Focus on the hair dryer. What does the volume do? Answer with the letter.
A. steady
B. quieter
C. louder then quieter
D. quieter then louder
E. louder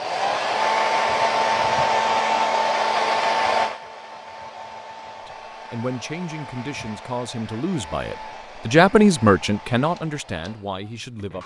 B.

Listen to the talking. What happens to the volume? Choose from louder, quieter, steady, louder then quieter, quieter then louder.
louder then quieter.